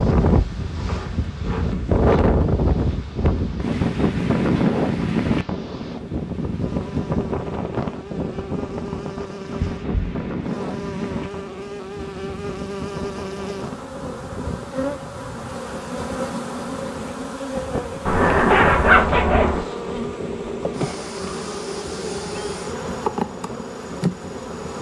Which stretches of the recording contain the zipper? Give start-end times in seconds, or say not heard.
0.8-1.9, 9.8-10.2, 18.1-19.6.